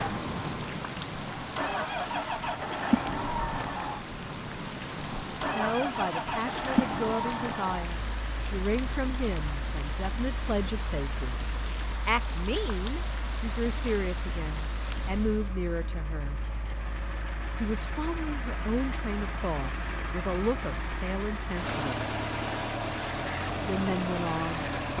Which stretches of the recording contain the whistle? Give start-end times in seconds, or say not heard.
not heard.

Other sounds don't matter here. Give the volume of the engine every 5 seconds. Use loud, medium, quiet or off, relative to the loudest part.
loud, loud, quiet, medium, loud.